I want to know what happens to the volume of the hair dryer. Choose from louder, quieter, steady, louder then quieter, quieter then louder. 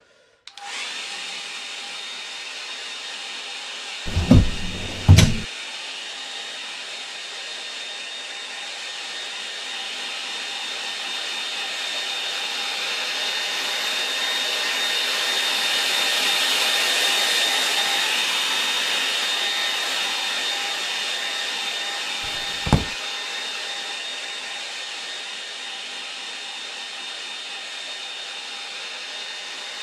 louder then quieter.